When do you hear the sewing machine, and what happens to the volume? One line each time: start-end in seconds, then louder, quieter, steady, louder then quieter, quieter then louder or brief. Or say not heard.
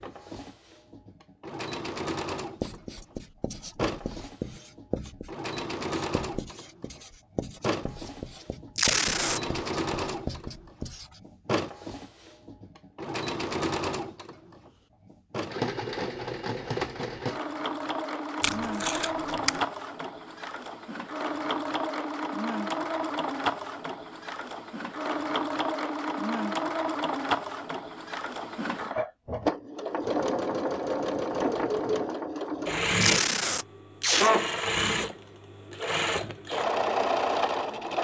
0.0-37.9 louder.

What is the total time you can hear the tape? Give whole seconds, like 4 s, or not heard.
3 s.